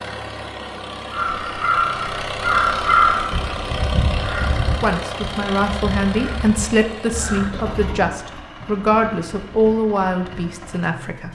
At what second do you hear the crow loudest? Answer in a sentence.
The volume of the crow peaks at 3 seconds.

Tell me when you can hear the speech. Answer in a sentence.
The speech can be heard from 4.7 to 11.3 s.